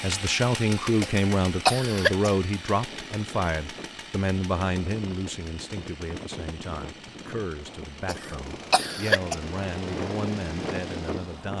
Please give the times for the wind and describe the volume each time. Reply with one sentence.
The wind can be heard from 2.6 to 11.5 s, getting louder.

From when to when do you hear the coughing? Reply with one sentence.
You can hear the coughing from 1.0 to 2.3 s and from 8.1 to 9.3 s.